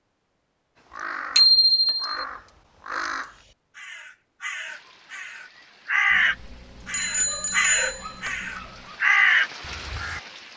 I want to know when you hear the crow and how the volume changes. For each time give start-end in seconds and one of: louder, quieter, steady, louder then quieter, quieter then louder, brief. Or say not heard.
0.9-10.2 louder.